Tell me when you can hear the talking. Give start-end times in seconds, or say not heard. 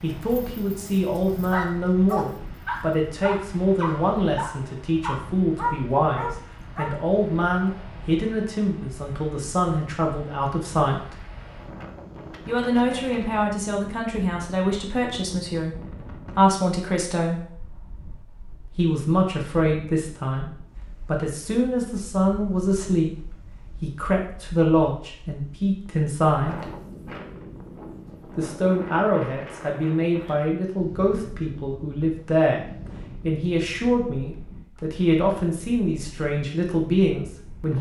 0.0-11.2, 12.4-17.4, 18.8-26.6, 28.4-37.7.